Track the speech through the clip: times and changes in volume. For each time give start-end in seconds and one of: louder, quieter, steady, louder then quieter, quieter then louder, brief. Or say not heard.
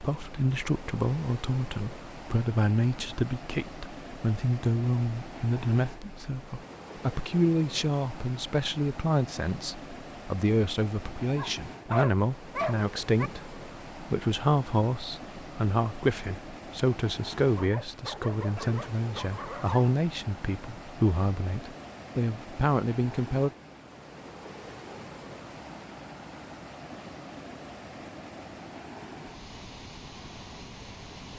0.0-23.5 steady.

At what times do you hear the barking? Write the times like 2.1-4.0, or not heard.
11.2-13.3, 17.6-19.9.